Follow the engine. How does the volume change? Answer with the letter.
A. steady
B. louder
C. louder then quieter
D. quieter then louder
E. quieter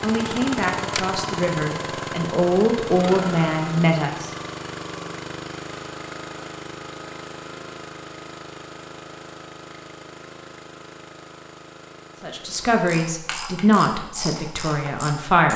E.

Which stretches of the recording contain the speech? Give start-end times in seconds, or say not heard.
0.0-4.3, 12.2-15.5.